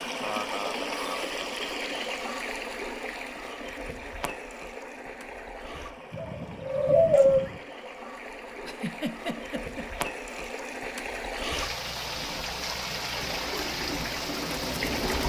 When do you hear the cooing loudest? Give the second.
7 s.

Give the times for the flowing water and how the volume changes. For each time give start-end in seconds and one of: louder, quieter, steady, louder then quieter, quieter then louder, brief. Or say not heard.
0.0-15.2 quieter then louder.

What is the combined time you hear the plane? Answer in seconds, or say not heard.
not heard.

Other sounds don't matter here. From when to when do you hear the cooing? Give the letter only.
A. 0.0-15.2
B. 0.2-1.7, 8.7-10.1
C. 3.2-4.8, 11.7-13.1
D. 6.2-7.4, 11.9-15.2
D.